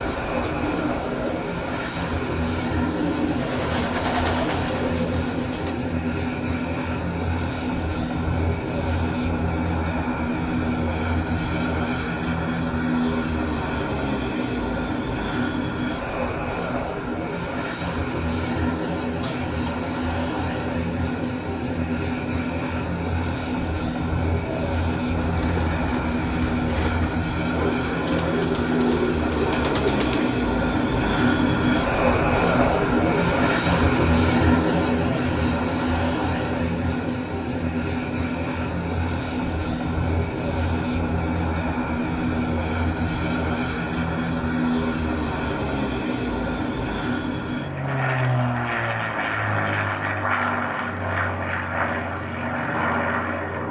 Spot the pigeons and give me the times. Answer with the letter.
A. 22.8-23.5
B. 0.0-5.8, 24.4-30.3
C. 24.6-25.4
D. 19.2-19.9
B.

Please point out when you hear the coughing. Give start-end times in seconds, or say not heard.
19.2-19.9.